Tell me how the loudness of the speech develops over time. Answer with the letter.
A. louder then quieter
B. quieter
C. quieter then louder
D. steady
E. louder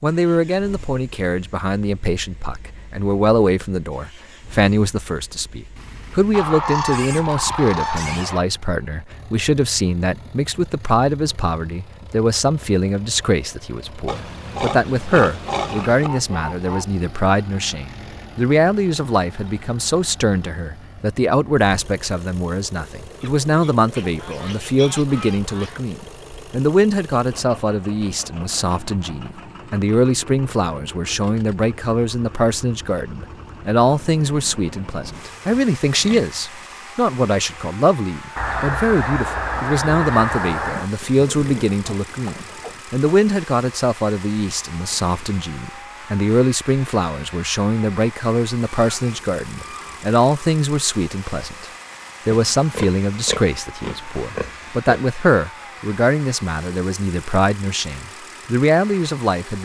D.